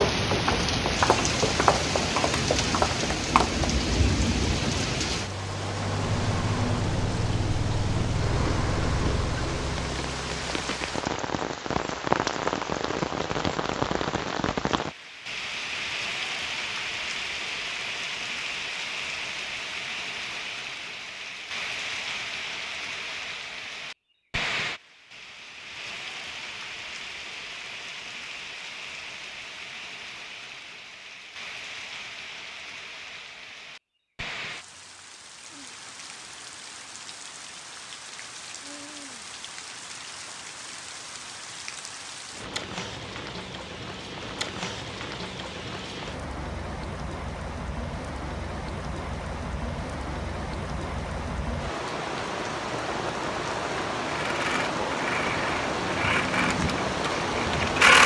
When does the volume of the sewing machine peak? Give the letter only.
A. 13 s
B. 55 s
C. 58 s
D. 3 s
C.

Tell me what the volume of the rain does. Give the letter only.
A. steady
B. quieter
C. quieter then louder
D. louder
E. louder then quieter
C.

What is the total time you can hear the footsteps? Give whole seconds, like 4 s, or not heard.
4 s.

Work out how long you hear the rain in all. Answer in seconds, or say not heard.
58 s.